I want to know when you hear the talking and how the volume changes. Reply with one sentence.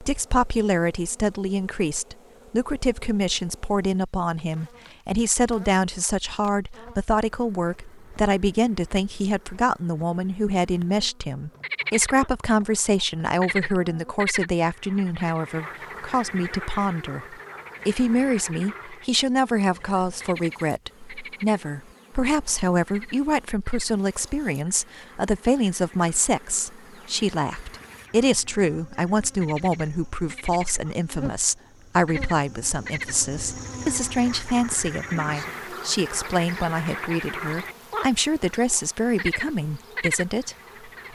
You can hear the talking from 0.0 to 41.1 s, at a steady volume.